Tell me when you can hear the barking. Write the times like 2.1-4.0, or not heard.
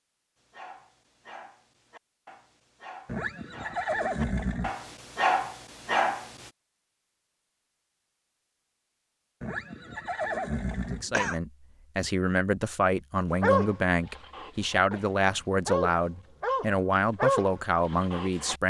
0.4-6.5, 13.4-18.6.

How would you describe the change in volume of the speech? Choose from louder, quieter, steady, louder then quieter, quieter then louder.
steady.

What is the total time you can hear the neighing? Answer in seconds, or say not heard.
4 s.